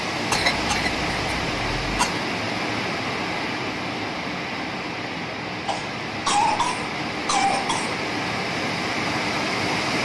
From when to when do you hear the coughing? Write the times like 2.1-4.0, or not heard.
0.3-2.2, 5.7-8.0.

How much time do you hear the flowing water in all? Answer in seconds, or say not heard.
10 s.